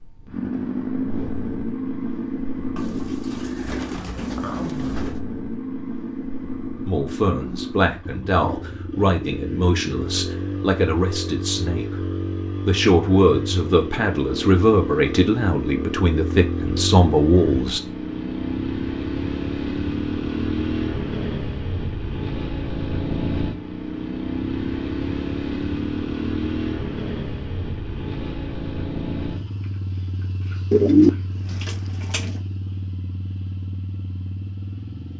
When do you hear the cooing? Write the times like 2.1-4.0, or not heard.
2.8-5.2, 30.7-32.4.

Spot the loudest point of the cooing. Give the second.
31 s.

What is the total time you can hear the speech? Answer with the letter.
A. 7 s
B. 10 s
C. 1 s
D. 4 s
B.